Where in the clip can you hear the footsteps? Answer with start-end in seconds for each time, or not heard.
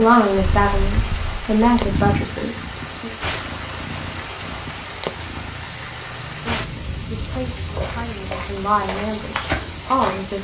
7.2-10.3.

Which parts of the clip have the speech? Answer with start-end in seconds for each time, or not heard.
0.0-3.1, 6.5-10.3.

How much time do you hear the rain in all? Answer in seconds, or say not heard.
10 s.